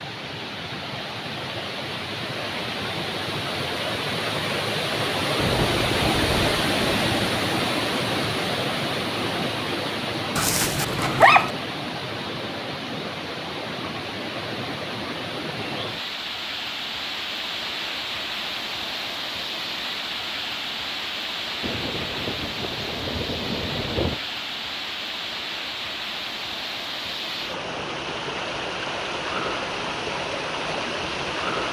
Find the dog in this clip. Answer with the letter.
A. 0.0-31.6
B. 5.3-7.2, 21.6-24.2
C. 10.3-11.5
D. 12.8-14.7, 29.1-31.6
C.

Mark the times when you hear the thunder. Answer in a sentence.
You can hear the thunder from 5.3 to 7.2 s and from 21.6 to 24.2 s.